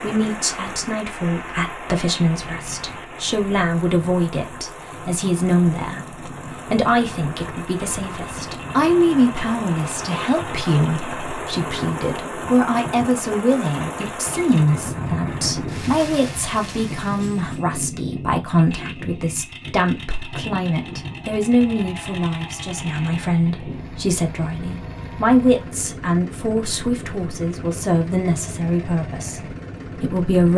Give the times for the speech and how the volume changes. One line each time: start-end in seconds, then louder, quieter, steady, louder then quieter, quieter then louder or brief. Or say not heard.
0.0-30.5 steady.